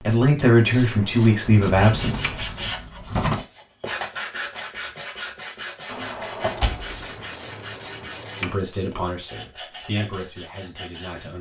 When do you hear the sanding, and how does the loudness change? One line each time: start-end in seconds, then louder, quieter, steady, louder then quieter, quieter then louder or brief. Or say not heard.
1.6-11.3 quieter.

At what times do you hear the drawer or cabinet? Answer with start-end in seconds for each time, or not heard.
1.4-3.5, 5.9-7.0.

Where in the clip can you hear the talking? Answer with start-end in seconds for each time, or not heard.
0.0-2.5, 8.4-11.3.